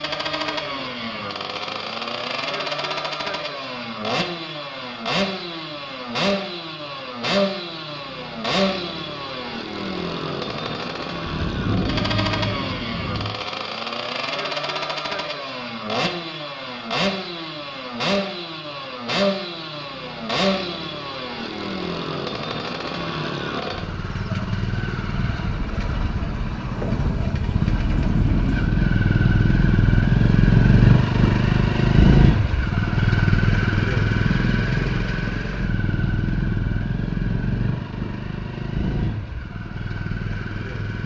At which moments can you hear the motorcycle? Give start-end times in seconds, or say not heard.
0.0-41.0.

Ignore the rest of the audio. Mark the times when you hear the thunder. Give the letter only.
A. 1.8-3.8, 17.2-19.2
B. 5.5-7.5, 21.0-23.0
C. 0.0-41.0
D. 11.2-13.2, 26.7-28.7
D.